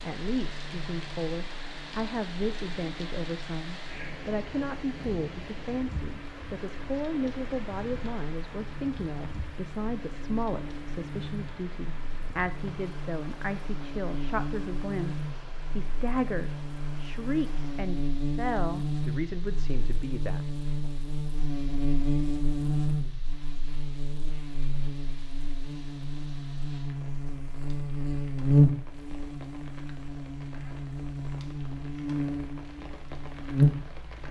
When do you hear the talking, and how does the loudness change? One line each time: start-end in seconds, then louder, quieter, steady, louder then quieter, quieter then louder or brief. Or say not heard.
0.0-20.9 steady.